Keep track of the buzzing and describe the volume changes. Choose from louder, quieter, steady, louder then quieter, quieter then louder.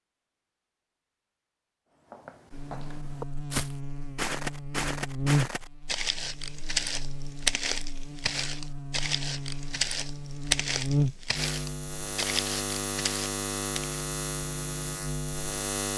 quieter then louder.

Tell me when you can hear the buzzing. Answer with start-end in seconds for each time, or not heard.
2.5-15.9.